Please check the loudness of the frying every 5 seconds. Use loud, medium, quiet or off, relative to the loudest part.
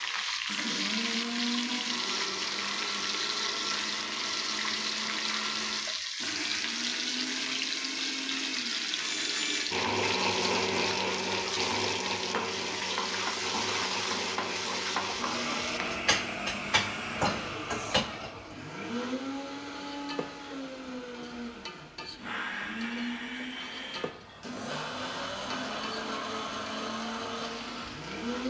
loud, loud, loud, loud, quiet, quiet.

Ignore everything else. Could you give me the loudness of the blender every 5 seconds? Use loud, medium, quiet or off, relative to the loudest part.
loud, loud, loud, loud, medium, loud.